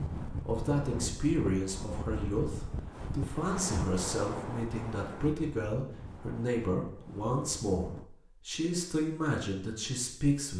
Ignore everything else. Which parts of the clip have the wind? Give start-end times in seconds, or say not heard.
0.0-8.1.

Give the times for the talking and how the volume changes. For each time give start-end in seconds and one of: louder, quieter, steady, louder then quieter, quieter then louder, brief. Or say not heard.
0.0-10.5 steady.